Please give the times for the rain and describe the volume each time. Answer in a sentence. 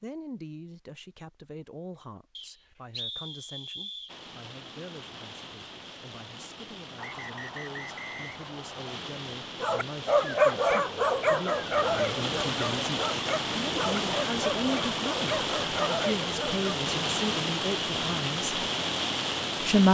The rain can be heard from 4.0 to 19.8 s, getting louder.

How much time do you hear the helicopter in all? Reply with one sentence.
You can't hear the helicopter here.